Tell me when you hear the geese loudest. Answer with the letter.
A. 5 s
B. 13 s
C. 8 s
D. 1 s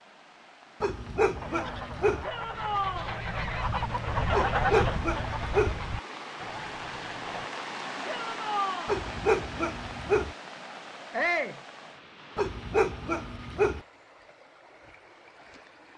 A.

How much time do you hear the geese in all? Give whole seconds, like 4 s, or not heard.
6 s.